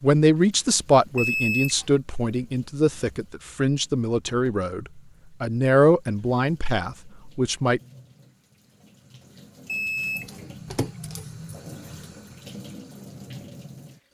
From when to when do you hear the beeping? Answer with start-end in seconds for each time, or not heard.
1.1-1.9, 9.7-11.2.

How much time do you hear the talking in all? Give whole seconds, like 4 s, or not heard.
8 s.